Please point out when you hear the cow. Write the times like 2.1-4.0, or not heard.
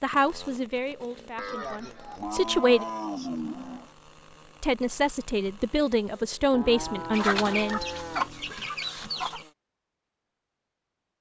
1.4-3.9, 6.5-8.6.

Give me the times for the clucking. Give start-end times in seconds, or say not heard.
7.1-9.4.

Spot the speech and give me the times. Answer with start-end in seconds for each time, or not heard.
0.0-2.9, 4.6-7.8.